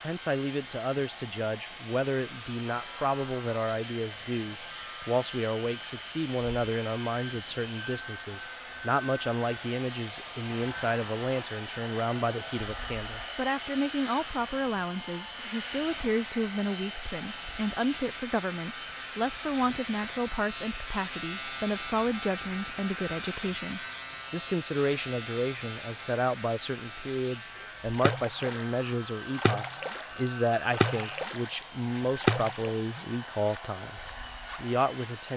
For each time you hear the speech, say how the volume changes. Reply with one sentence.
The speech can be heard from 0.0 to 35.3 s, at a steady volume.